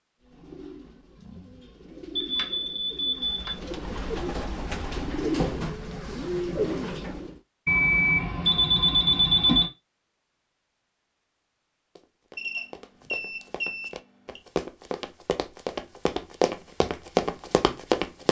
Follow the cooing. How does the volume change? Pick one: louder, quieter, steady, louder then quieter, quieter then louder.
louder.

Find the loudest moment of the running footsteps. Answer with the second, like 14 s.
17 s.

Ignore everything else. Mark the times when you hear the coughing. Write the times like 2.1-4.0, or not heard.
not heard.